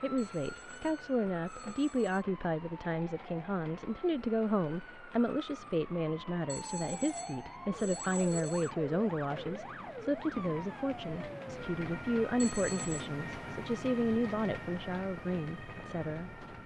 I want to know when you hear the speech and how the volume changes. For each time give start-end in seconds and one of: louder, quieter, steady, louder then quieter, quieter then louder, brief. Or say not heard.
0.0-16.6 steady.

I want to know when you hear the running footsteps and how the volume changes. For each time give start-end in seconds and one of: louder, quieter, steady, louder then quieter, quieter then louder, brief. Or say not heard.
not heard.